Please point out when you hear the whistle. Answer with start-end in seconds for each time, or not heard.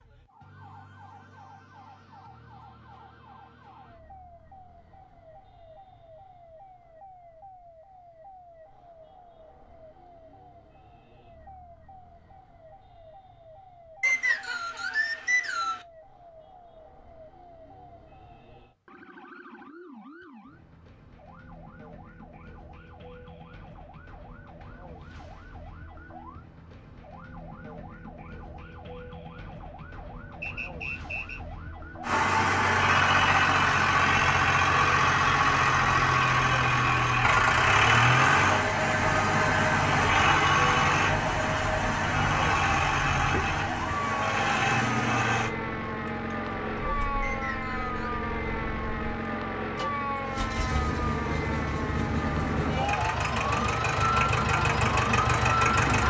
14.0-15.8, 30.4-31.4, 47.2-48.2.